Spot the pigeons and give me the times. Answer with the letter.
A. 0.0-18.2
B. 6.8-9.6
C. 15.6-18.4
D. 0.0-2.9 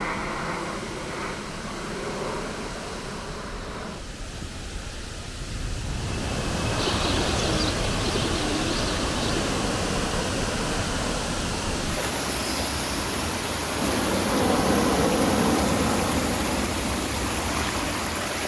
B.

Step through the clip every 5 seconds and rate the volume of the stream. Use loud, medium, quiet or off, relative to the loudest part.
medium, loud, loud, loud.